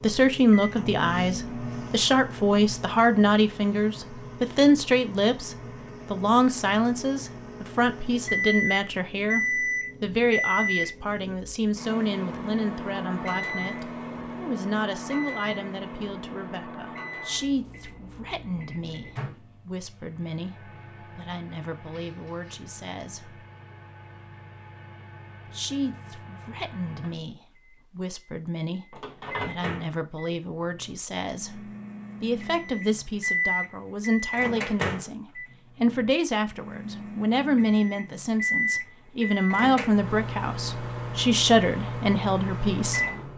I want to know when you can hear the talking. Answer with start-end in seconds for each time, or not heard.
0.0-23.4, 25.4-43.0.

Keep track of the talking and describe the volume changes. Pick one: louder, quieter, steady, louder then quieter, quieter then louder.
quieter then louder.